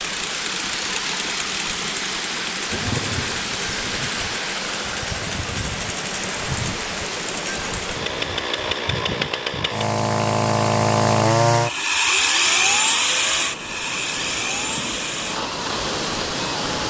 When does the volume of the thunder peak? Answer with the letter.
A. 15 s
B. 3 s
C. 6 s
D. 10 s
B.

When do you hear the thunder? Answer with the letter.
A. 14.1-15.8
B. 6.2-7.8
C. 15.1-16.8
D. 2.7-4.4
D.